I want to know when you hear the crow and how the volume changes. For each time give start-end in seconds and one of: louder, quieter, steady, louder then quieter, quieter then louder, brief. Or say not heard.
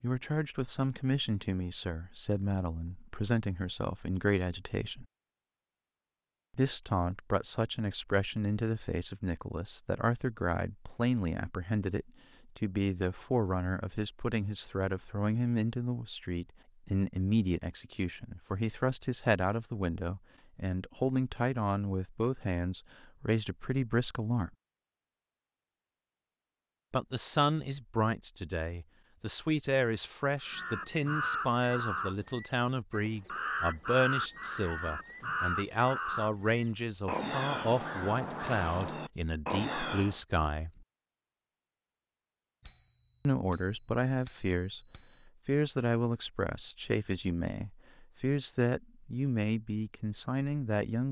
30.4-40.2 steady.